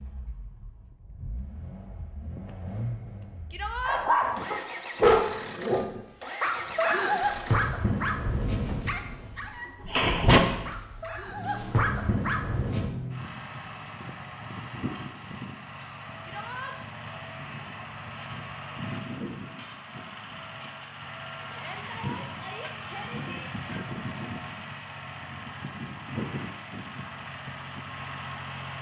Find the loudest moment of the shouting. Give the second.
4 s.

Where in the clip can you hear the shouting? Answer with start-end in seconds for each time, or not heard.
3.5-4.0, 16.2-16.8, 21.5-23.4.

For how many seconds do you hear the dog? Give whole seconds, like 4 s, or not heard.
9 s.